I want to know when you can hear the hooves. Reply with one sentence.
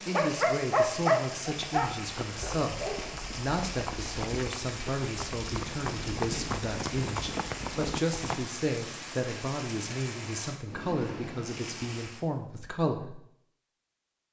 The hooves can be heard from 1.6 to 8.4 s.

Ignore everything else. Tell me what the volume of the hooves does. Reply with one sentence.
The volume of the hooves goes up.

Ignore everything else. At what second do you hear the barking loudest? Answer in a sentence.
The loudest moment of the barking is at 1 second.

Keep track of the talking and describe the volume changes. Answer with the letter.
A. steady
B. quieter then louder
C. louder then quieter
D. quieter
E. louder
A.